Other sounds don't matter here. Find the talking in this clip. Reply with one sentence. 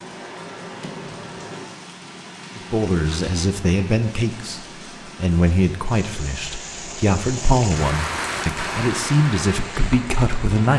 You can hear the talking from 2.5 to 10.7 s.